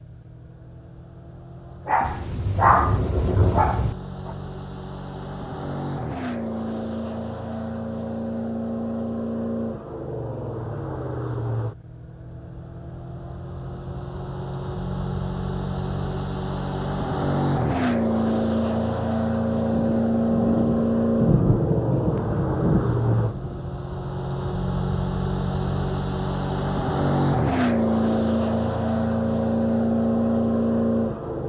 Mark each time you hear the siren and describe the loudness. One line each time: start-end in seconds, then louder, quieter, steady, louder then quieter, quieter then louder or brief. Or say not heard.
not heard.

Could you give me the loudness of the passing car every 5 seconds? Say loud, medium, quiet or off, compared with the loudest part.
quiet, medium, medium, loud, loud, loud, loud.